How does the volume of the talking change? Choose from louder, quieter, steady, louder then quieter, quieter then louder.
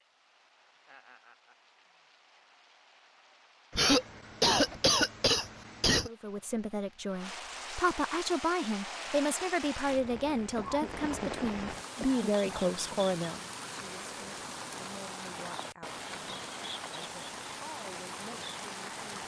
quieter.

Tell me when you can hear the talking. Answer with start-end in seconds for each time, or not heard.
6.0-19.1.